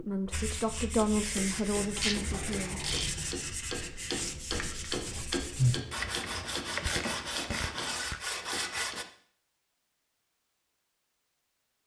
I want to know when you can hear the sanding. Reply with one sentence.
The sanding can be heard from 0.3 to 9.1 s.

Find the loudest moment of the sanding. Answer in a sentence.
The loudest moment of the sanding is at 6 seconds.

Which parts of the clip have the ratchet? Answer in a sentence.
You can hear the ratchet from 1.8 to 3.4 s and from 6.0 to 8.2 s.